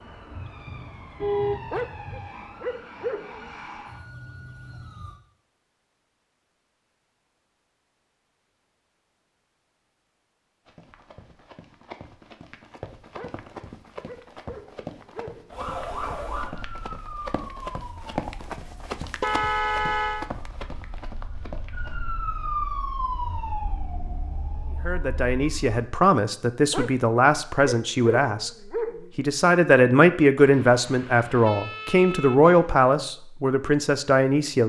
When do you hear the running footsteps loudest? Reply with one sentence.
The volume of the running footsteps peaks at 18 seconds.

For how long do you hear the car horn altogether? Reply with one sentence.
You can hear the car horn for 5 seconds altogether.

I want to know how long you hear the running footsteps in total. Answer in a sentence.
The running footsteps can be heard for 11 seconds in total.